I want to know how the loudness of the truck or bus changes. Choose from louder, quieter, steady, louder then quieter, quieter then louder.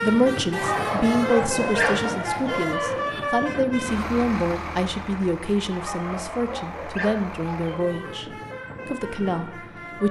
quieter.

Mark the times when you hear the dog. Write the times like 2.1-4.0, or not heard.
0.5-3.0, 5.7-8.2.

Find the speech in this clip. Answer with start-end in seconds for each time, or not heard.
0.0-8.2, 8.8-10.0.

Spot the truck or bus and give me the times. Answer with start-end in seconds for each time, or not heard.
0.0-10.0.